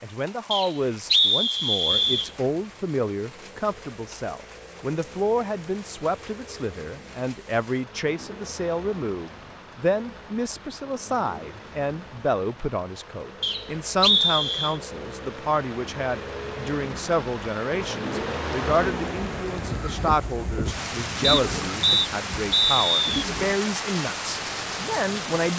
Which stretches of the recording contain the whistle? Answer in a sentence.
The whistle can be heard from 0.5 to 2.3 s, from 13.4 to 14.8 s and from 21.2 to 23.2 s.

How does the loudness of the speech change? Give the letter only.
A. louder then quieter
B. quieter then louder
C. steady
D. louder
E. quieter
C.